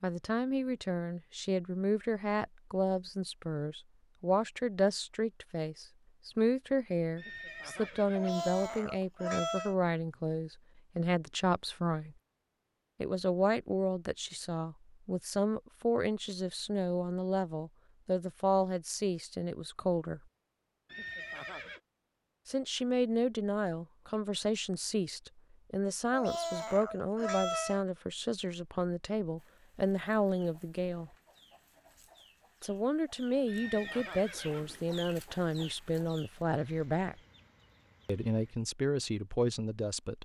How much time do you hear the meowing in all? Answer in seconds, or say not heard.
3 s.